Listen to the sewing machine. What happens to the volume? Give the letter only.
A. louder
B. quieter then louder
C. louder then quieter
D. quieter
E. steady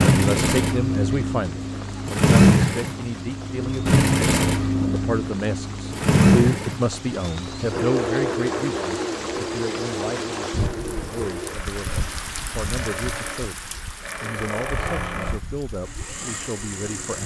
D.